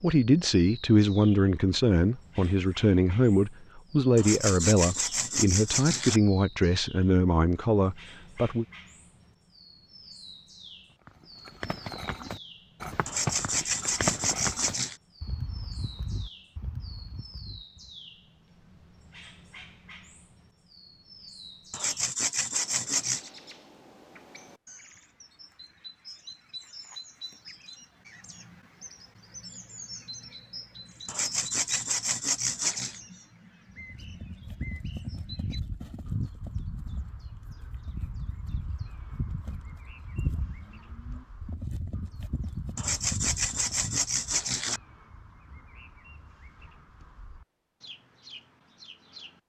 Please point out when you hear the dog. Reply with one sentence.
The dog can't be heard in this clip.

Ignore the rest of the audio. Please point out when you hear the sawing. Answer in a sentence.
You can hear the sawing from 4.2 to 6.2 s, from 13.1 to 14.9 s, from 21.7 to 23.3 s, from 31.1 to 33.0 s and from 42.8 to 44.8 s.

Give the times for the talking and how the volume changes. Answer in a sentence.
The talking can be heard from 0.0 to 8.7 s, at a steady volume.